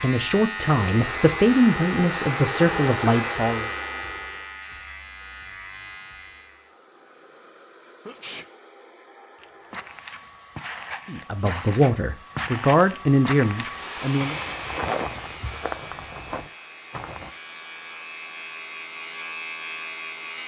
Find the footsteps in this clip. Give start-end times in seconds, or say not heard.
9.3-17.3.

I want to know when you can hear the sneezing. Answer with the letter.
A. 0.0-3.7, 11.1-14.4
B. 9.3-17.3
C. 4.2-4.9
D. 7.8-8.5
D.